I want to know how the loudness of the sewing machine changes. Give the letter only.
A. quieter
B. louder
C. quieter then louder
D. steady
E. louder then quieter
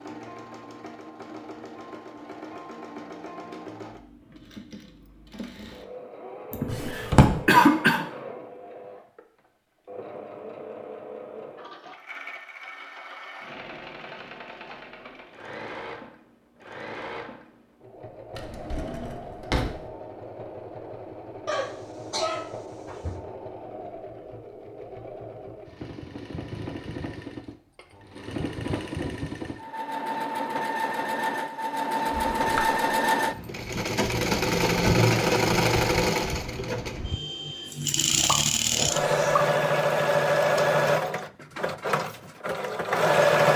B.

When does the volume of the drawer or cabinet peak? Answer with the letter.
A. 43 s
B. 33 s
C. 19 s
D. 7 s
D.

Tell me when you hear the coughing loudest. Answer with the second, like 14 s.
8 s.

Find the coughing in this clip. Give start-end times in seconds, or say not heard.
6.5-8.1, 21.4-23.1, 38.2-39.4.